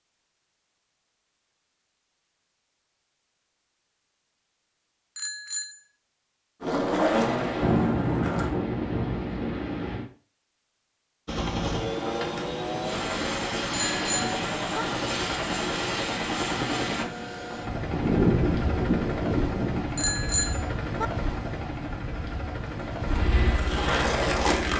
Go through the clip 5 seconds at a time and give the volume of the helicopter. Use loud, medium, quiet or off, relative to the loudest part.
off, off, loud, loud, loud.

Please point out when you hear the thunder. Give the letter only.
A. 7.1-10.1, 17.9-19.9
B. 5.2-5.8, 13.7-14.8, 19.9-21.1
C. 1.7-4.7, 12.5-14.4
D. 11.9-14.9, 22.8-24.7
A.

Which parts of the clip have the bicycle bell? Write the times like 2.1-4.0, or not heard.
5.2-5.8, 13.7-14.8, 19.9-21.1.